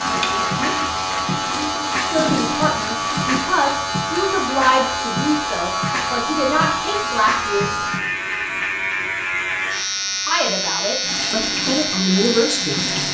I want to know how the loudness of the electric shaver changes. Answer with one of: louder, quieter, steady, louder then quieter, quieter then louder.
steady.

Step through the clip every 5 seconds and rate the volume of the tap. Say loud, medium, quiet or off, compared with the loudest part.
loud, off, loud.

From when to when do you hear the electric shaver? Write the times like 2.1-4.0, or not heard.
0.0-13.0.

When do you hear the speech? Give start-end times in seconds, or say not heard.
2.0-7.7, 10.2-12.8.